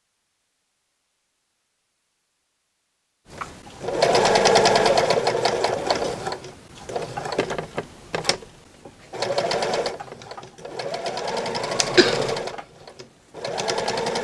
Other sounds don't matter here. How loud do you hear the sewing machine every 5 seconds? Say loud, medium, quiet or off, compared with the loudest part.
loud, medium, medium.